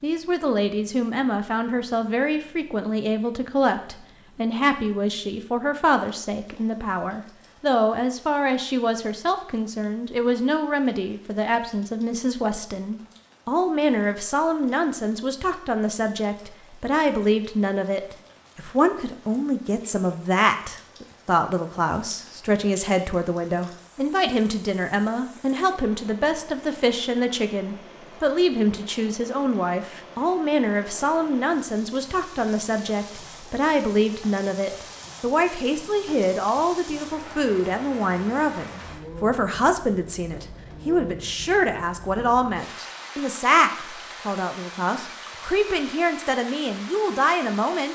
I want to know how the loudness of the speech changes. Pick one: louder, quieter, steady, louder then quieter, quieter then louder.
steady.